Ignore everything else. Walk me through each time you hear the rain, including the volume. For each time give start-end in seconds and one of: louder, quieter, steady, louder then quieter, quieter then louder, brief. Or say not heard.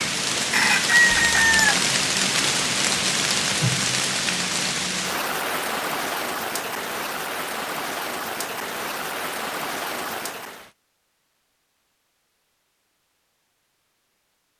0.0-10.7 quieter.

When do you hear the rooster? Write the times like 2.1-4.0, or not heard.
0.5-1.8.